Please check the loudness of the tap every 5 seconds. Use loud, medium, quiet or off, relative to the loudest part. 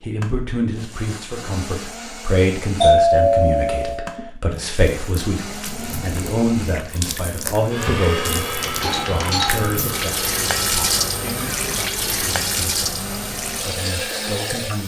off, medium, loud.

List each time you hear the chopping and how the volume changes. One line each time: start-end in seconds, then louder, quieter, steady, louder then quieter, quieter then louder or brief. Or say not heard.
not heard.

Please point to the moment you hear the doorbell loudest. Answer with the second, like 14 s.
3 s.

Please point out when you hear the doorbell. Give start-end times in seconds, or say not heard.
2.8-4.3, 8.6-9.7.